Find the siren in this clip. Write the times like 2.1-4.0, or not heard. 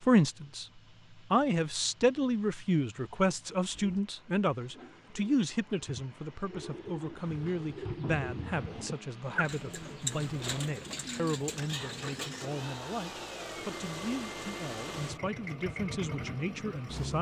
not heard.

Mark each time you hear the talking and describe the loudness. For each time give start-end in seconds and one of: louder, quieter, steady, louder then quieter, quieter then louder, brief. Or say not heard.
0.0-0.7 brief
1.3-17.1 quieter.